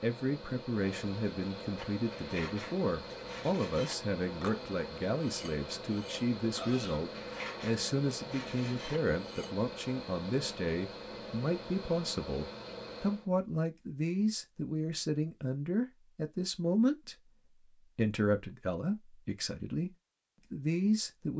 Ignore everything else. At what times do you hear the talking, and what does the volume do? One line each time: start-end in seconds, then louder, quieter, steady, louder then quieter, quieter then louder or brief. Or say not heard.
0.0-21.3 steady.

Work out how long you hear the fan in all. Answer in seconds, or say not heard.
13 s.